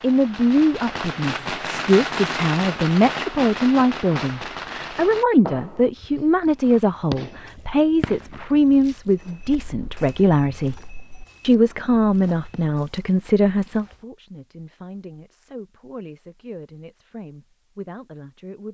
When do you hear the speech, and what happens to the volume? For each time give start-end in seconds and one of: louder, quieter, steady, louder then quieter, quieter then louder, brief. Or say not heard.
0.0-10.8 steady
11.4-18.6 quieter.